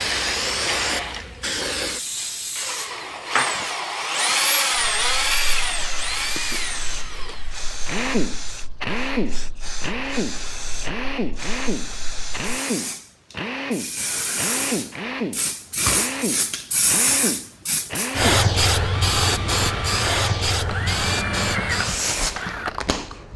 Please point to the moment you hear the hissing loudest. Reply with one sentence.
The loudest moment of the hissing is at 19 seconds.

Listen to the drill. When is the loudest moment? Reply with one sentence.
The loudest moment of the drill is at 5 seconds.